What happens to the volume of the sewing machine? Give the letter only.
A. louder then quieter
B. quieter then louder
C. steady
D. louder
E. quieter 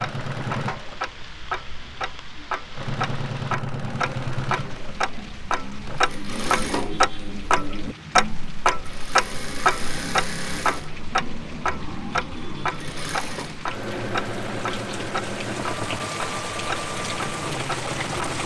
C.